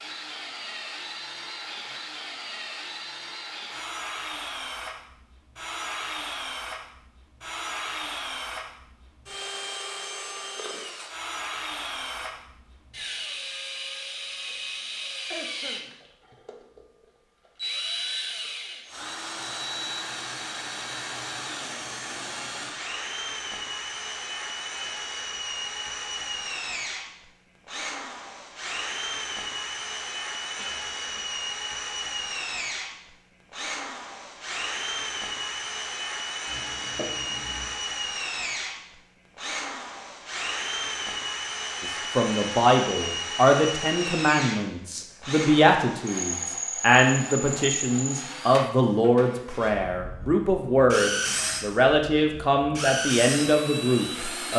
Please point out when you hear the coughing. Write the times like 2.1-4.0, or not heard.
15.3-16.4, 30.6-31.4, 36.5-37.8.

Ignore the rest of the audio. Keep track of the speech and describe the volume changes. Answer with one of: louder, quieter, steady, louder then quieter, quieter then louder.
steady.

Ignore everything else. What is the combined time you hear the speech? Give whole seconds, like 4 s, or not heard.
13 s.